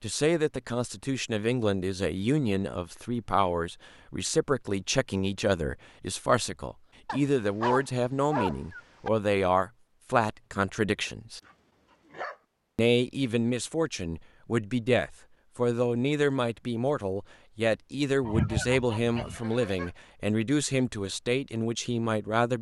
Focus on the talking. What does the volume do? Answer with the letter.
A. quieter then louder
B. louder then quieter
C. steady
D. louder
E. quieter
C.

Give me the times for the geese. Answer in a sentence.
You can hear the geese from 18.2 to 19.9 s.